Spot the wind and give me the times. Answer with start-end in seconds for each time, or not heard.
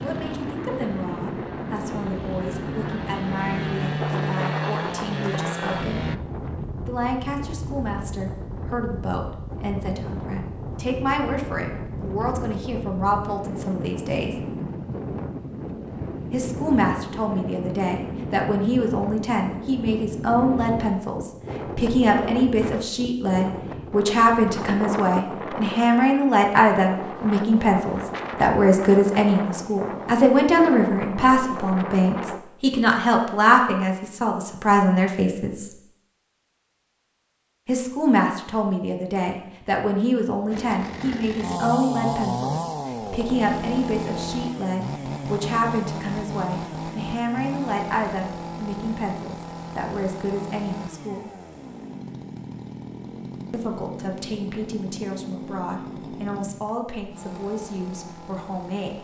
0.0-32.4.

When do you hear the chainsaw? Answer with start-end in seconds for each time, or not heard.
0.0-6.2, 40.5-58.9.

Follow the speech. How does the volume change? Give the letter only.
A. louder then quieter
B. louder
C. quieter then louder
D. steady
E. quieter
A.